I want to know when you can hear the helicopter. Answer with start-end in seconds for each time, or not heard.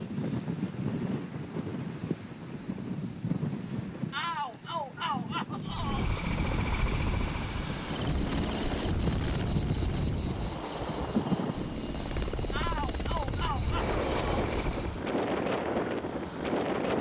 5.5-15.1.